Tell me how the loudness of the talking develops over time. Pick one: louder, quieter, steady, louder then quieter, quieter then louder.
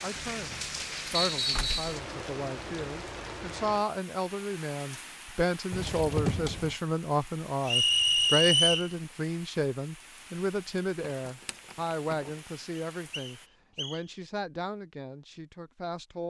louder then quieter.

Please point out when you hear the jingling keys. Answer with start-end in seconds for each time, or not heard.
0.1-1.8, 5.7-6.8, 11.2-12.3.